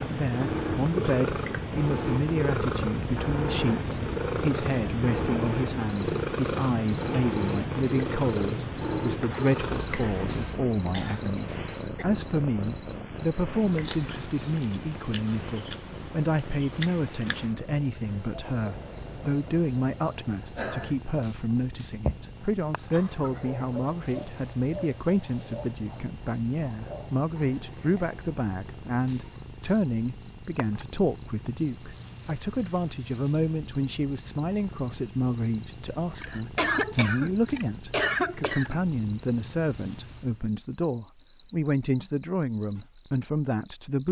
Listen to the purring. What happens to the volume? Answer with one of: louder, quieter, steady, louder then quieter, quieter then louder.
quieter.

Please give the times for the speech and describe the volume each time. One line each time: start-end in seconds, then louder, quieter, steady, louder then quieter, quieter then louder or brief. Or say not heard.
0.0-44.0 steady.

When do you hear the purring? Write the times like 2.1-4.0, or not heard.
0.0-40.5.